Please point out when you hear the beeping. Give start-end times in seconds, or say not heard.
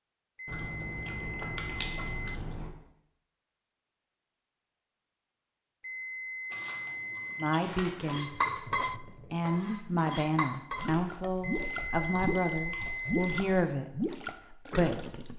0.3-2.4, 5.8-7.6, 11.4-13.4.